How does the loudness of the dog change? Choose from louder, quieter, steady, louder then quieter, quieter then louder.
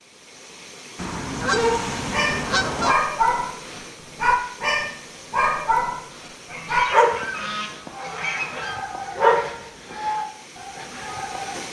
quieter.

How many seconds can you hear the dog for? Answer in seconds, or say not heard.
10 s.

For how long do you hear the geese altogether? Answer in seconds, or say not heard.
4 s.